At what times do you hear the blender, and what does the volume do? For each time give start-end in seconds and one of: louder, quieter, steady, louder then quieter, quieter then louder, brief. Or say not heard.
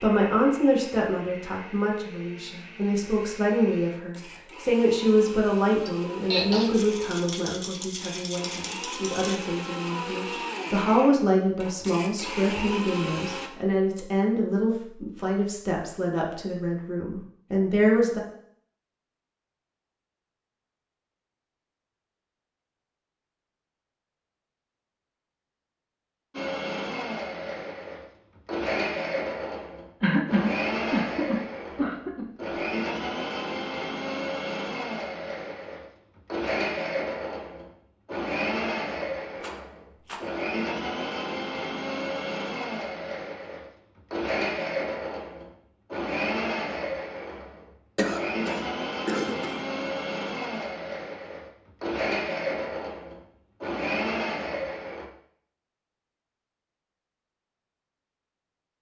0.0-13.5 louder
26.3-55.0 steady.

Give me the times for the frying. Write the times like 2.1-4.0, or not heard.
not heard.